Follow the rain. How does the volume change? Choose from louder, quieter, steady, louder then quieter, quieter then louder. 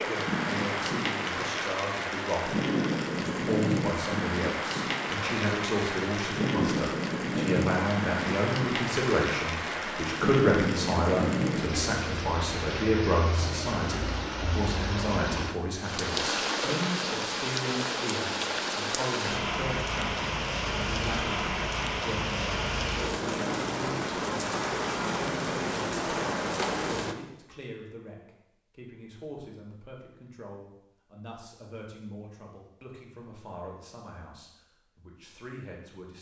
steady.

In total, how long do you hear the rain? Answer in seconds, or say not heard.
27 s.